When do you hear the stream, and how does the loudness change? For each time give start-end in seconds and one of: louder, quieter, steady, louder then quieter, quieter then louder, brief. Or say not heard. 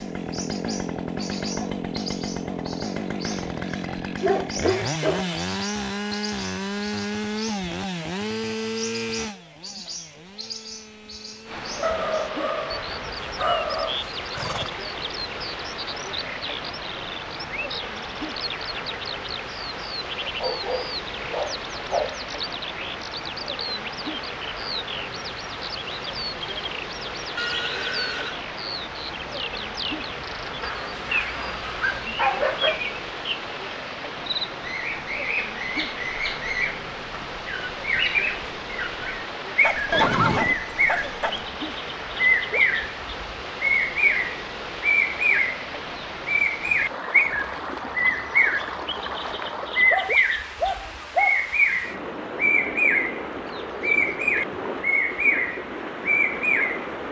11.4-57.0 steady.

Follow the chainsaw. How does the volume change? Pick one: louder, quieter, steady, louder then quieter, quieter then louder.
quieter.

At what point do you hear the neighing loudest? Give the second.
40 s.